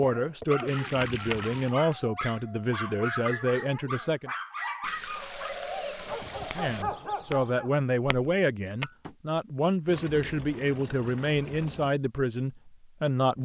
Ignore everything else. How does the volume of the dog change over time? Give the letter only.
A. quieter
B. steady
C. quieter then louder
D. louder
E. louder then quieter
B.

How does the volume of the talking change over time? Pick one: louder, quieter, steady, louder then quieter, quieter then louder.
steady.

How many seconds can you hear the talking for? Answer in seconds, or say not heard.
11 s.